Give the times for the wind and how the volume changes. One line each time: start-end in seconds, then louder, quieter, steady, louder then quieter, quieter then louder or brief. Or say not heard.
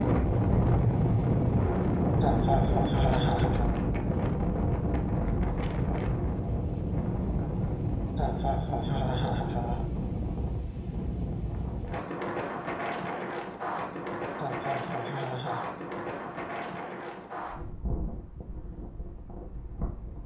0.0-20.2 quieter.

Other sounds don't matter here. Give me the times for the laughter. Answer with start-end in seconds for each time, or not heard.
2.2-3.8, 8.2-9.8, 14.3-15.7.